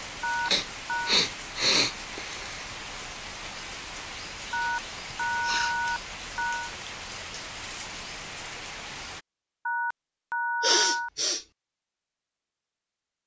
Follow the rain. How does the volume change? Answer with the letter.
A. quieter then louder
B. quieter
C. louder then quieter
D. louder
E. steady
E.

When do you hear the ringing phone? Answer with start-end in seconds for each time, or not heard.
0.2-1.2, 4.5-6.8, 9.7-11.1.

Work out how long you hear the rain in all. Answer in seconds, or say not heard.
9 s.